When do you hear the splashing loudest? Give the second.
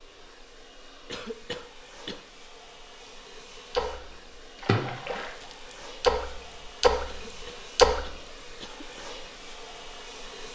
8 s.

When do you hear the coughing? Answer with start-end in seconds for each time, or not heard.
1.1-2.2, 7.0-9.1.